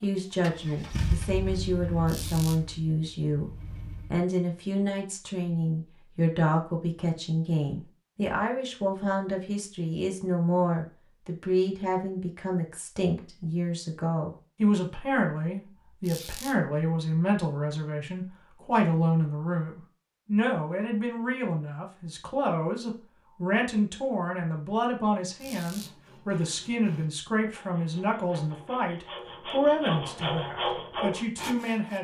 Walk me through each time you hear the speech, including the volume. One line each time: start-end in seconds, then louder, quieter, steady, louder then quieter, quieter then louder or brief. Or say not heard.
0.0-31.9 steady.